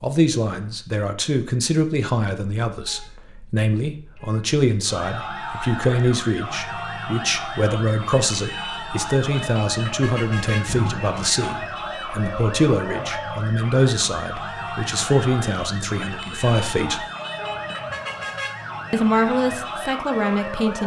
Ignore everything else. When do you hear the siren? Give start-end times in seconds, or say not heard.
4.8-20.8.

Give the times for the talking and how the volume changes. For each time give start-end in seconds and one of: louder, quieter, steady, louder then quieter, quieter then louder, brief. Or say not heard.
0.0-17.1 steady
18.9-20.8 brief.